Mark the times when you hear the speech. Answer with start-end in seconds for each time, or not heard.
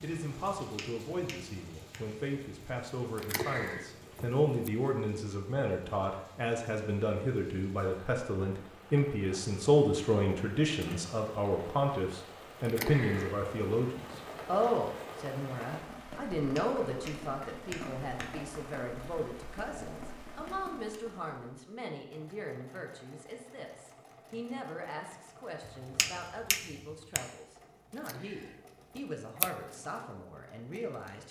0.0-31.2.